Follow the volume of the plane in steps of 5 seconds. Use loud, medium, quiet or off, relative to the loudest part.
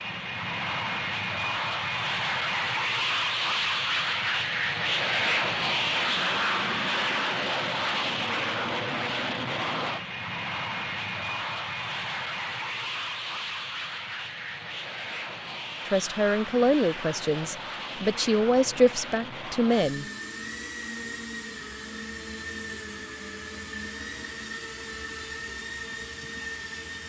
loud, loud, medium, medium, medium, medium.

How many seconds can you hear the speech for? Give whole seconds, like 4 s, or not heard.
4 s.